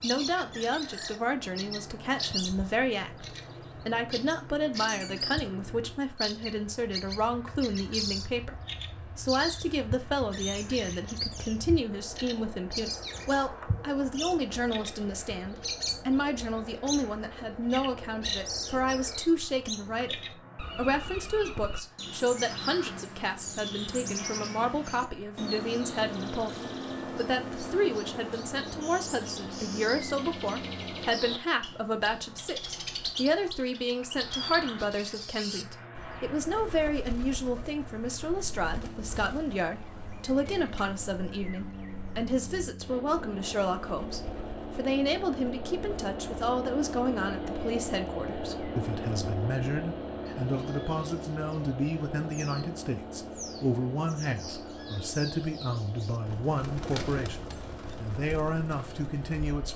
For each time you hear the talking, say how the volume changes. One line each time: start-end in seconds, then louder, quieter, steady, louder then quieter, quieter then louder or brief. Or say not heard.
0.0-59.7 steady.